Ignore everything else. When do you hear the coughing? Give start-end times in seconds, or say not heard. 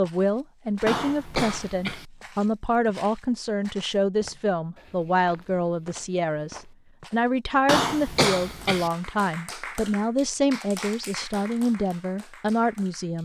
0.8-2.0, 7.7-8.9.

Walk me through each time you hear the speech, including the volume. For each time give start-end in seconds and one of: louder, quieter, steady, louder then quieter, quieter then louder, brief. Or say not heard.
0.0-13.1 steady.